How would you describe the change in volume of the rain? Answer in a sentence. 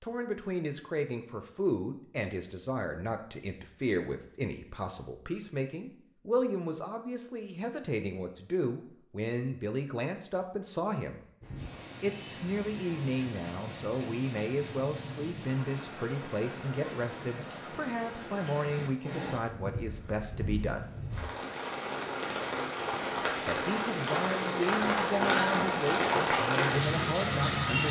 The volume of the rain goes up.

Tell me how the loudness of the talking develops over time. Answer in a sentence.
The volume of the talking stays about the same.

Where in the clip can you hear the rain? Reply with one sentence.
You can hear the rain from 11.4 to 27.8 s.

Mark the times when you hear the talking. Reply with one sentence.
The talking can be heard from 0.0 to 11.2 s, from 12.0 to 20.9 s and from 23.4 to 27.8 s.